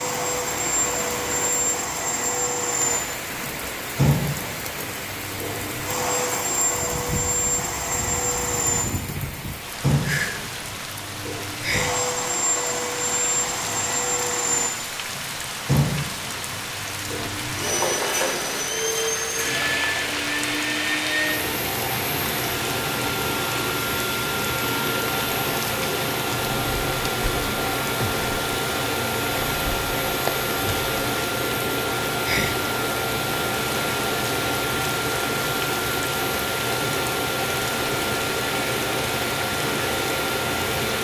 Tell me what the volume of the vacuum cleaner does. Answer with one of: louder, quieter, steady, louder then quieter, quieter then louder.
steady.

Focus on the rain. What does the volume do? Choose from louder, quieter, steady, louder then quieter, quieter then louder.
steady.